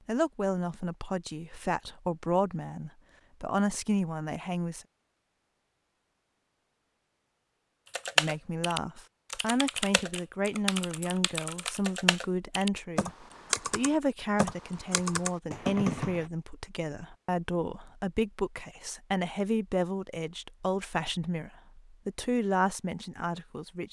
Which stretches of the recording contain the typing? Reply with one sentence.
The typing can be heard from 7.9 to 16.2 s.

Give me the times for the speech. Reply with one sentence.
The speech can be heard from 0.1 to 4.8 s and from 8.2 to 23.8 s.